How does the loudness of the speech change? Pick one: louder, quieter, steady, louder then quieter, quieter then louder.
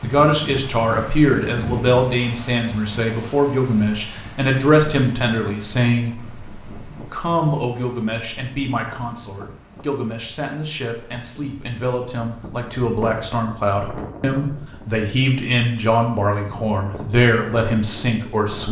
quieter then louder.